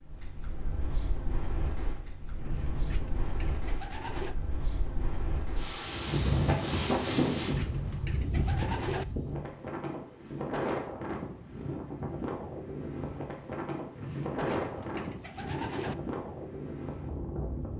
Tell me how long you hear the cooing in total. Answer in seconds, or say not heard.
6 s.